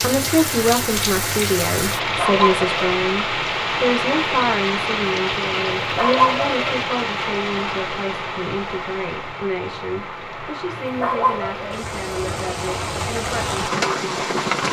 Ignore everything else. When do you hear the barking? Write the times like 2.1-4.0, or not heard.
2.0-2.8, 5.7-6.8, 10.7-11.8.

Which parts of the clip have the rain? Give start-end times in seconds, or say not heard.
0.0-14.6.